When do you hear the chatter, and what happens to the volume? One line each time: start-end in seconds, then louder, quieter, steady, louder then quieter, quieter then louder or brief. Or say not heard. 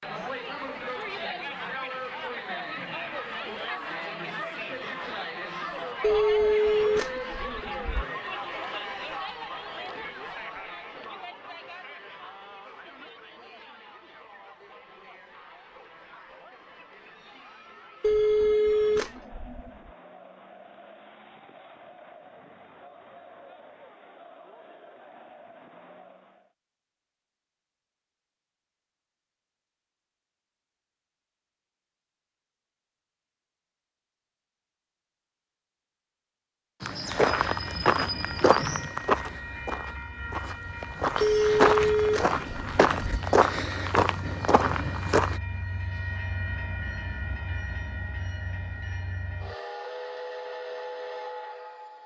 0.0-26.6 quieter.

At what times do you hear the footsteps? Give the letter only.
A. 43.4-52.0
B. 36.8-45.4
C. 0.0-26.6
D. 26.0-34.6
B.